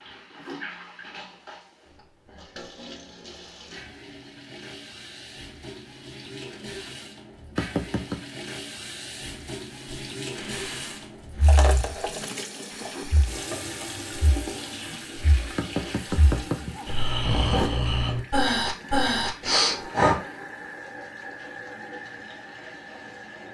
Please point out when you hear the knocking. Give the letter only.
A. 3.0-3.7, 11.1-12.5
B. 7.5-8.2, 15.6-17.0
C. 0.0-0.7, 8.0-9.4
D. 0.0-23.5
B.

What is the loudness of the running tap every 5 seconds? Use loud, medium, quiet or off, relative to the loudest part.
medium, medium, loud, loud, medium.